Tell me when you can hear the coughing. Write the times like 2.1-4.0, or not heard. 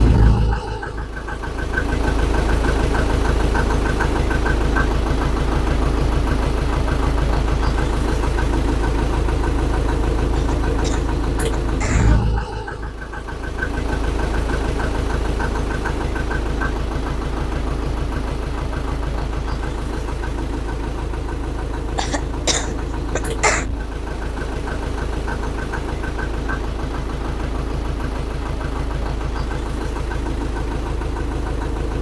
10.3-12.2, 21.9-23.6.